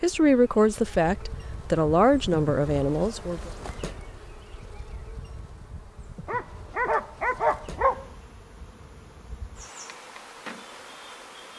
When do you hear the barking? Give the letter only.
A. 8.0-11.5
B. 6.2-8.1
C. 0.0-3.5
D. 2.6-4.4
B.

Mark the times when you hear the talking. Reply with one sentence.
You can hear the talking from 0.0 to 3.5 s.